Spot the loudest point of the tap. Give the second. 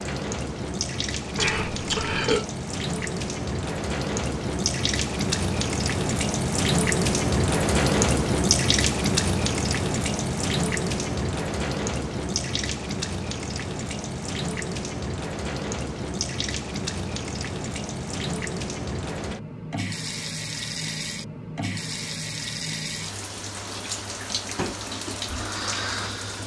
8 s.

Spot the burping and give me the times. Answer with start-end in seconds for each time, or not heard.
1.4-2.5.